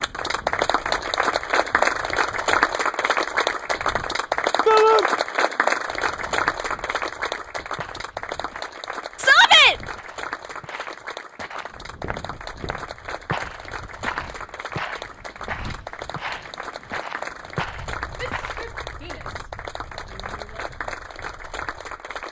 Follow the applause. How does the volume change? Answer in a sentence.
The loudness of the applause goes down.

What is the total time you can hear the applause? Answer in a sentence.
You can hear the applause for 22 seconds altogether.